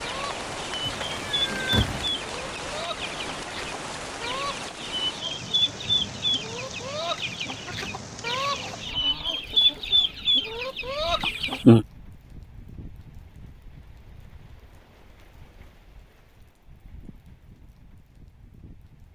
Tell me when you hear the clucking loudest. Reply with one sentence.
The volume of the clucking peaks at 10 seconds.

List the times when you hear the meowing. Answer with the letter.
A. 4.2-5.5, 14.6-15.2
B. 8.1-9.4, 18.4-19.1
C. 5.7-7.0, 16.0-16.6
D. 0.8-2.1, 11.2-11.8
D.